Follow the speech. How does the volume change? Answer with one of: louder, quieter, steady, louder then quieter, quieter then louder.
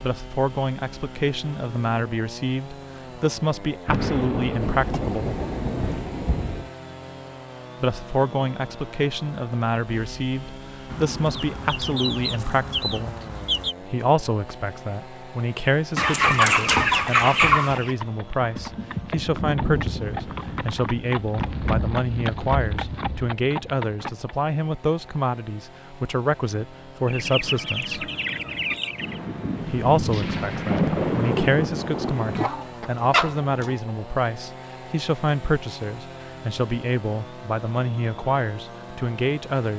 steady.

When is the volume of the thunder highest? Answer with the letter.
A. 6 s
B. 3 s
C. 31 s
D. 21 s
C.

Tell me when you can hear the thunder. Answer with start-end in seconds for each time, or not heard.
3.9-6.7, 19.2-23.4, 29.0-32.5.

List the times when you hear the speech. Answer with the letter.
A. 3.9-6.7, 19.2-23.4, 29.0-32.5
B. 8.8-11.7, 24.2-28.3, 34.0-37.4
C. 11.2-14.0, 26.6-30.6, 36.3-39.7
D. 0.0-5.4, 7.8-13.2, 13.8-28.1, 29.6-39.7
D.